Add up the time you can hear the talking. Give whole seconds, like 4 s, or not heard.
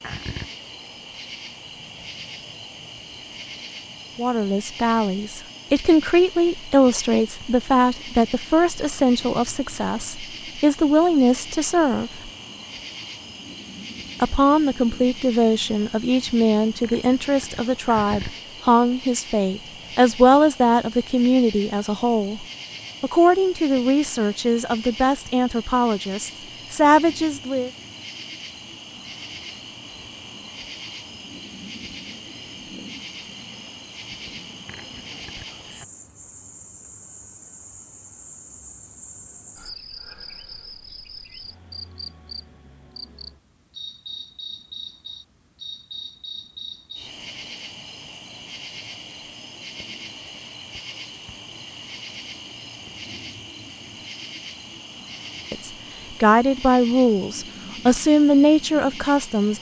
26 s.